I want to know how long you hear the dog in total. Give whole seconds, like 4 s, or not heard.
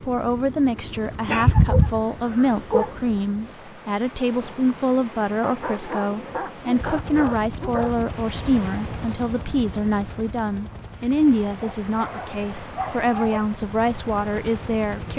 6 s.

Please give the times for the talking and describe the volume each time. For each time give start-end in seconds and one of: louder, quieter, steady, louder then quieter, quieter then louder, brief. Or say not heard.
0.0-15.1 steady.